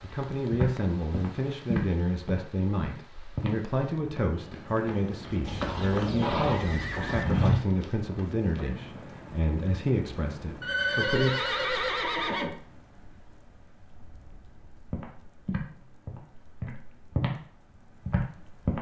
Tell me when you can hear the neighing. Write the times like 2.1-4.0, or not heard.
5.4-7.2, 10.6-12.6.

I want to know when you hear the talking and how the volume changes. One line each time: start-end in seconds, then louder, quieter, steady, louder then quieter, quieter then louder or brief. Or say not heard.
0.0-11.3 steady.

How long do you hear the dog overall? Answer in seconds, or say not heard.
not heard.